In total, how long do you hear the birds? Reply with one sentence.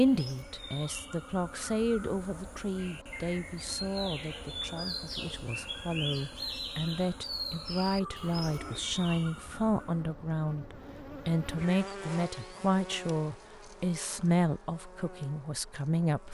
The birds can be heard for 10 seconds in total.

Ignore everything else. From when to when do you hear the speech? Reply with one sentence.
The speech can be heard from 0.0 to 16.2 s.